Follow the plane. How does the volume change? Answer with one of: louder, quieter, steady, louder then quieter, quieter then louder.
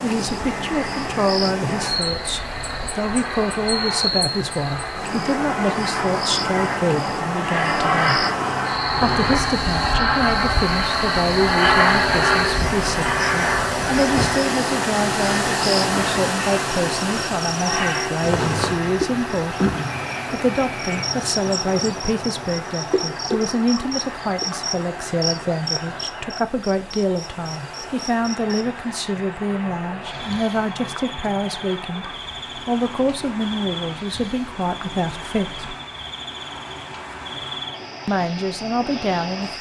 louder then quieter.